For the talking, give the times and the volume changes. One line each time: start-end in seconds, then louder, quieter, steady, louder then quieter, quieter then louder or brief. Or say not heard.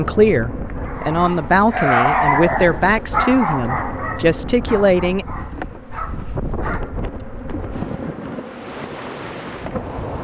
0.0-5.2 steady.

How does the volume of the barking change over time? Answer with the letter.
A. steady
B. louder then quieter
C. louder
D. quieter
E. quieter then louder
D.